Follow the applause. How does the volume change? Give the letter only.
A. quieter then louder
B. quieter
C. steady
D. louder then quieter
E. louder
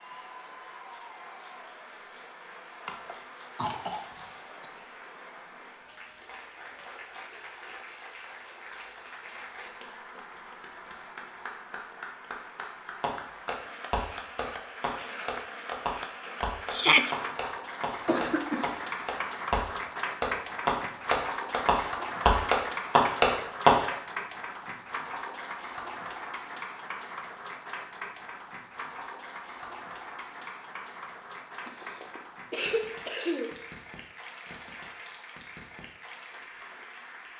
D.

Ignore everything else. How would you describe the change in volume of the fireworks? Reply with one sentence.
The loudness of the fireworks goes up.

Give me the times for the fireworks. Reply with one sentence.
The fireworks can be heard from 13.0 to 23.9 s.